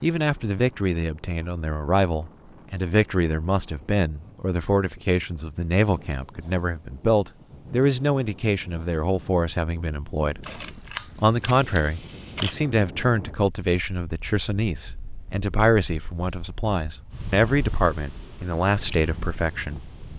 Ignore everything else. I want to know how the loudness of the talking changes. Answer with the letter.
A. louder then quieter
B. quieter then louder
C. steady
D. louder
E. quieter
C.